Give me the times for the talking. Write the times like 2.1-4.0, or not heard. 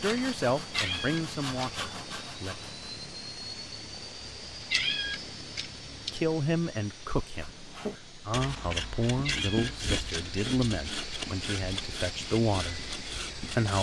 0.0-2.5, 6.1-13.7.